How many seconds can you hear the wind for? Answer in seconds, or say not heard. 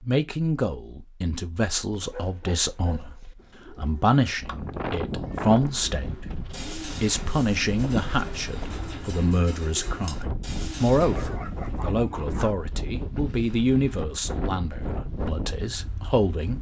12 s.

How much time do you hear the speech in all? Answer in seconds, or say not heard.
16 s.